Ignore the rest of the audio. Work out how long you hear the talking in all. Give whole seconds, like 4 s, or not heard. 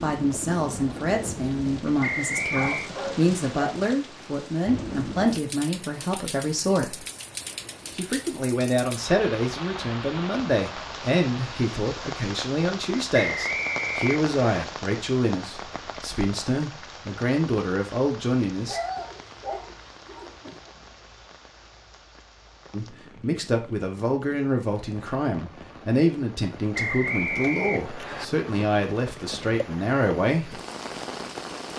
26 s.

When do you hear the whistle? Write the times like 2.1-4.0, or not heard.
2.0-2.9, 13.2-14.7, 26.7-28.2.